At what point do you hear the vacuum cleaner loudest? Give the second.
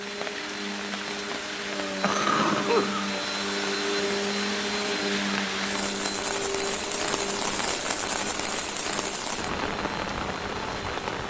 4 s.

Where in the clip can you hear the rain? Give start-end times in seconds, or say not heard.
0.0-11.2.